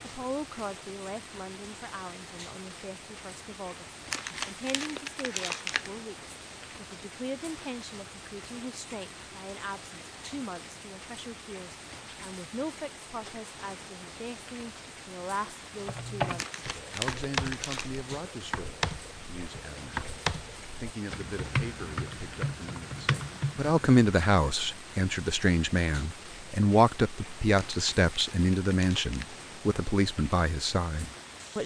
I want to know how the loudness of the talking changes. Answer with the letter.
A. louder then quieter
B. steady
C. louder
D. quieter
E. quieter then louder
C.